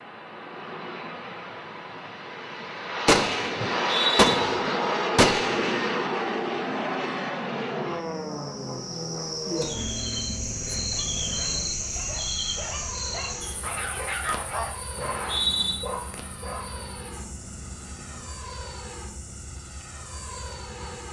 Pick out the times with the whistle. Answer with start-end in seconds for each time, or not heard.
3.8-4.3, 15.0-15.8.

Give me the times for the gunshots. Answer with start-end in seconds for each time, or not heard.
3.0-6.0.